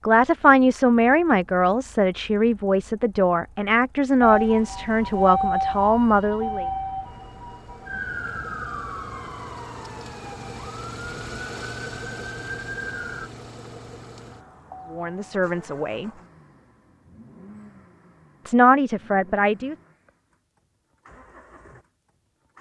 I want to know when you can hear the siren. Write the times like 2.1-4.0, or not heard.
4.2-13.3.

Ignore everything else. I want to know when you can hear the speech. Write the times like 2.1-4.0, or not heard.
0.1-6.7, 14.9-16.1, 18.4-19.8.